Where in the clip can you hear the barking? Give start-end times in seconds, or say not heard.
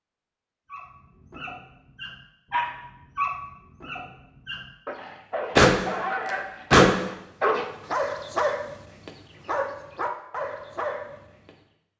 0.7-11.6.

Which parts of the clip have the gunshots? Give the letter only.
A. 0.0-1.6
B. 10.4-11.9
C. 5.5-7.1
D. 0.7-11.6
C.